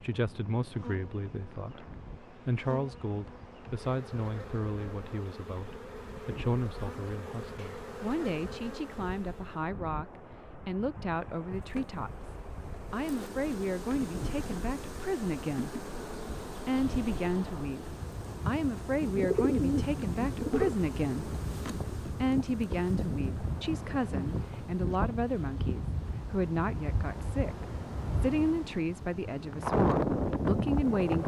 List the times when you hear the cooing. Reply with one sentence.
You can hear the cooing from 19.0 to 20.8 s.